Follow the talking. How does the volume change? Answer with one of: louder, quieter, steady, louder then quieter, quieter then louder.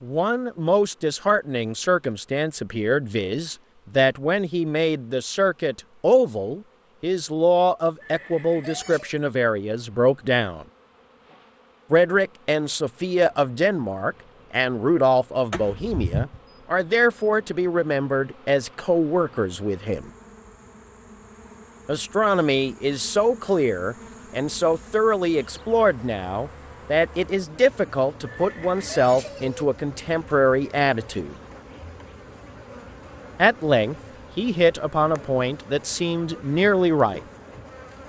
steady.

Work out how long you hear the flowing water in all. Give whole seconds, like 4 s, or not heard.
not heard.